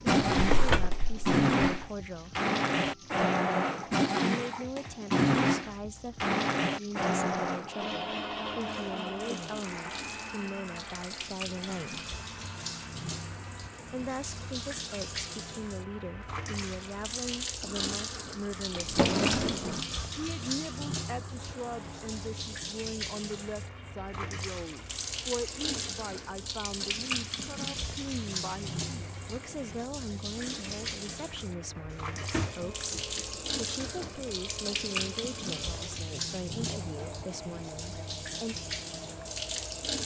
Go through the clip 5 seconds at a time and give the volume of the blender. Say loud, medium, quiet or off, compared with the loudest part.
loud, loud, quiet, quiet, quiet, quiet, quiet, quiet.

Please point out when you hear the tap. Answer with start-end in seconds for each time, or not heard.
0.0-40.0.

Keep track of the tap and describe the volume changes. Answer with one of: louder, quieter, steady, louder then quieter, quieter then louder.
louder.